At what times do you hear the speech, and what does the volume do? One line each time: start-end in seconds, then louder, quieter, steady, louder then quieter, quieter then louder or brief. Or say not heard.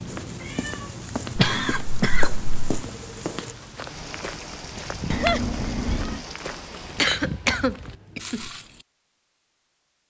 not heard.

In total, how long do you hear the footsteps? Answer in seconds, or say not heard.
9 s.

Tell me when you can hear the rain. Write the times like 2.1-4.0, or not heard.
0.0-7.2.